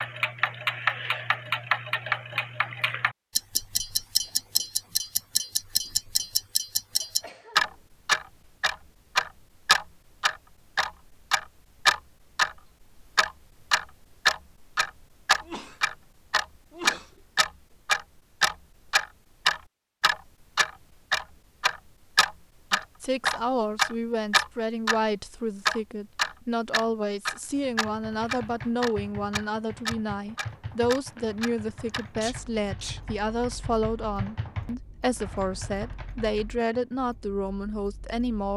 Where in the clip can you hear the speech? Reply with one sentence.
The speech can be heard from 22.7 to 38.5 s.